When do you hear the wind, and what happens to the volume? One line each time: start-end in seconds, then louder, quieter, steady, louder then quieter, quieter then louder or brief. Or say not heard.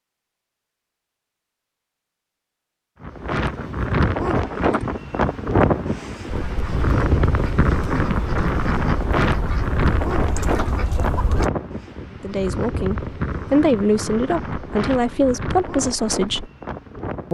3.0-17.2 quieter.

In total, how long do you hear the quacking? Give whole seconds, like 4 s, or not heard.
5 s.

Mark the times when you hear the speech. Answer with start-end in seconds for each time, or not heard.
12.2-16.5.